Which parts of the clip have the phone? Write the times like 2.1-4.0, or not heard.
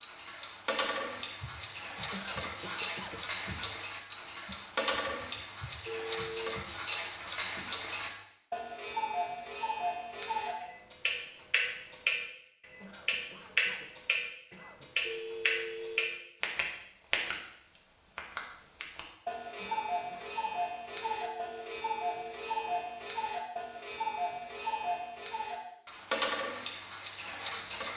5.8-6.7, 15.0-16.1, 20.9-22.9.